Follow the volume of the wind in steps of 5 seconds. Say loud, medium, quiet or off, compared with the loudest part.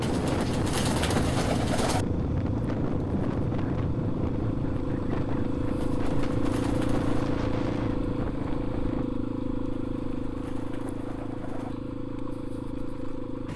loud, medium, off.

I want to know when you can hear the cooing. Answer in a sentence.
The cooing can be heard from 0.0 to 2.0 s, from 5.8 to 7.3 s and from 9.7 to 11.8 s.